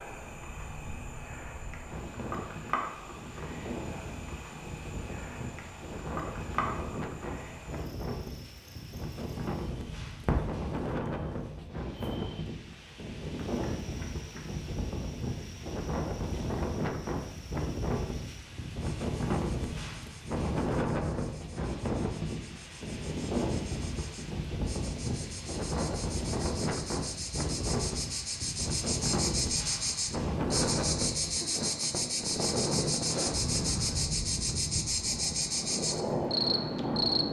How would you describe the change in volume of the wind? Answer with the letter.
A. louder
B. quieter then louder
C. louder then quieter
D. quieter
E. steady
A.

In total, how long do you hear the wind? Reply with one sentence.
You can hear the wind for 37 seconds altogether.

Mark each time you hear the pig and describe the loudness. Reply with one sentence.
The pig can't be heard in this clip.